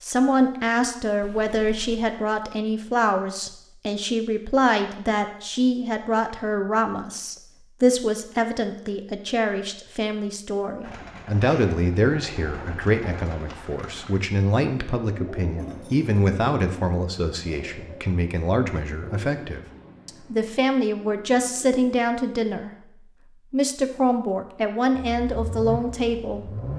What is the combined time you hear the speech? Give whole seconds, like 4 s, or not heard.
26 s.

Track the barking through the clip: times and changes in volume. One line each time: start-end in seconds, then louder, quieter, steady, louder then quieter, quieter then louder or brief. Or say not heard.
not heard.